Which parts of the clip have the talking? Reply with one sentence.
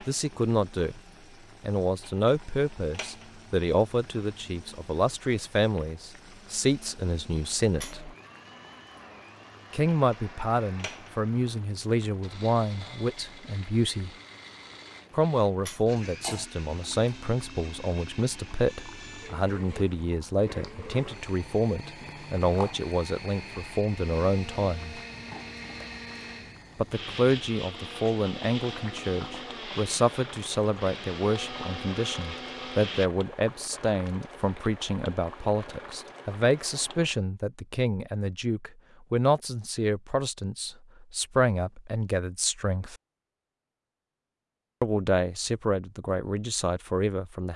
The talking can be heard from 0.0 to 1.0 s, from 1.6 to 8.2 s, from 9.7 to 14.1 s, from 15.1 to 25.0 s, from 26.8 to 43.0 s and from 44.8 to 47.5 s.